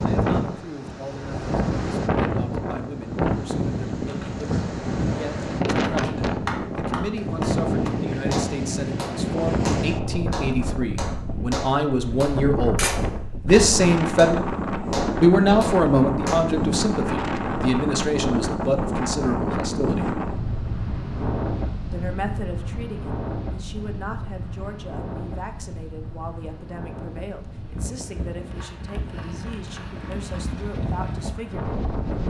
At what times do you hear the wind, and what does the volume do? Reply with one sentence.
The wind can be heard from 0.0 to 32.2 s, getting quieter.